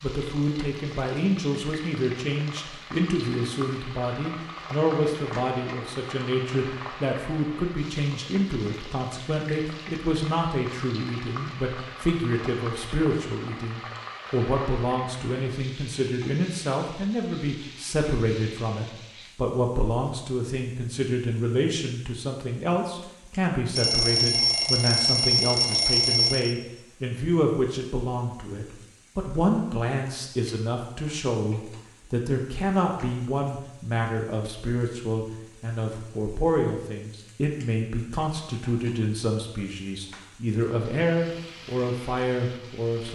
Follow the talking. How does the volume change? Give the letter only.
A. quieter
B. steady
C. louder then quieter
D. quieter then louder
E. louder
B.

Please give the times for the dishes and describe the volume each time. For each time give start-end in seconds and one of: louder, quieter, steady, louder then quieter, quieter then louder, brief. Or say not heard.
not heard.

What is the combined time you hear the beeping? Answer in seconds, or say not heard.
3 s.